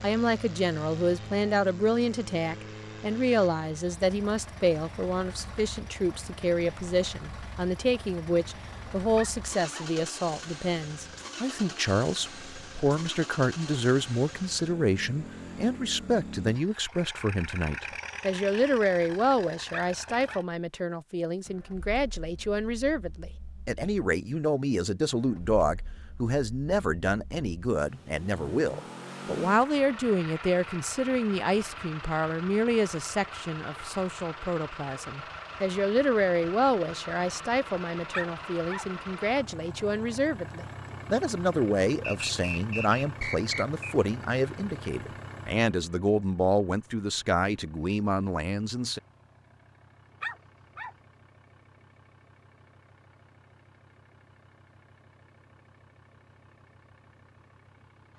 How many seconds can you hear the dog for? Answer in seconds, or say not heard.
3 s.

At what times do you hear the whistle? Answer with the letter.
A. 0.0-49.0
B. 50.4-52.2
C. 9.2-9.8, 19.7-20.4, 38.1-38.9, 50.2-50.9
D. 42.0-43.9
D.